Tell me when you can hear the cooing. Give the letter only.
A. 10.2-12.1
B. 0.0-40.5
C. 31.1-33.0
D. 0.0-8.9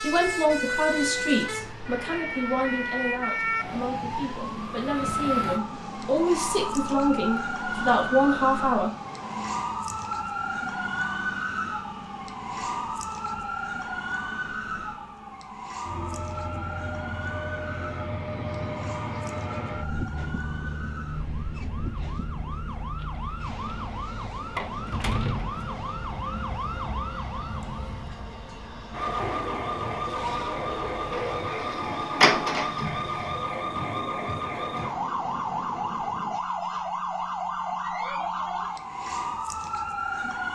C.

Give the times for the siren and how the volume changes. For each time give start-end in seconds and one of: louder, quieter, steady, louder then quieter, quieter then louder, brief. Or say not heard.
0.0-40.5 quieter then louder.